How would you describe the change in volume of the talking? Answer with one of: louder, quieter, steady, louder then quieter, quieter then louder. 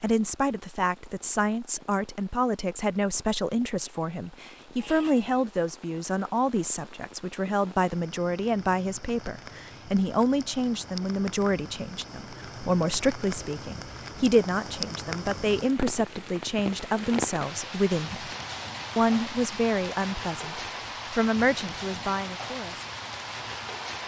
steady.